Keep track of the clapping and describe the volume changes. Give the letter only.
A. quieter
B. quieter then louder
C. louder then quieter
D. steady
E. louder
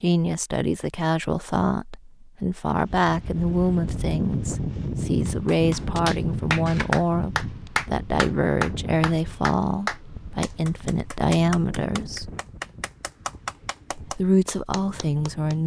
A.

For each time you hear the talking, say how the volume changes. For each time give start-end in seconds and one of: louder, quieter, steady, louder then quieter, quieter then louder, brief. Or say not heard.
0.0-12.3 steady
13.9-15.6 brief.